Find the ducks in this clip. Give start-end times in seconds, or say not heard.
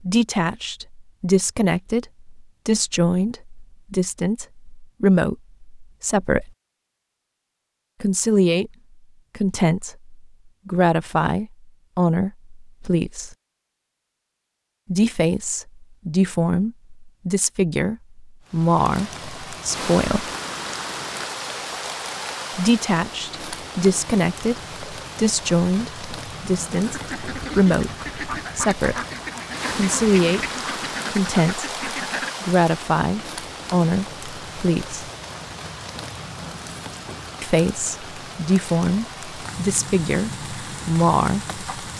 26.7-32.3.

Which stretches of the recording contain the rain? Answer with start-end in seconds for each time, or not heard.
18.4-41.9.